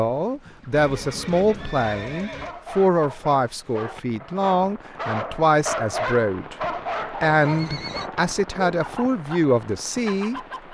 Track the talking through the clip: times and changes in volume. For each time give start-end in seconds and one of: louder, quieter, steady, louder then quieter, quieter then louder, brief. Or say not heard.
0.0-10.4 steady.